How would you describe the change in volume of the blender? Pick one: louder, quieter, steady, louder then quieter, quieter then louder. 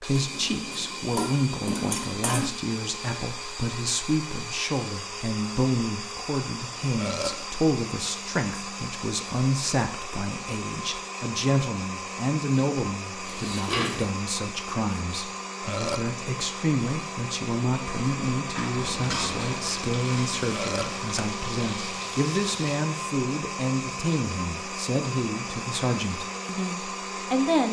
steady.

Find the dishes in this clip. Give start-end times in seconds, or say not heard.
0.1-2.5, 13.2-14.2, 18.5-19.6.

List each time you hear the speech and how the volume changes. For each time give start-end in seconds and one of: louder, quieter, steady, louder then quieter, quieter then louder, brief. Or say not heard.
0.0-27.6 steady.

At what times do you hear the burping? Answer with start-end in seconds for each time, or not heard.
7.0-7.5, 15.6-16.1, 20.5-21.0.